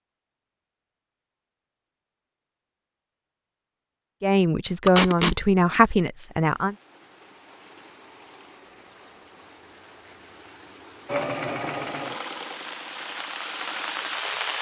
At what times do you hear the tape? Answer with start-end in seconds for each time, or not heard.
4.8-5.3.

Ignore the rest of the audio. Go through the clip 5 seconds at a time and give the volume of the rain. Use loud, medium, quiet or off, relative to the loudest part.
off, quiet, loud.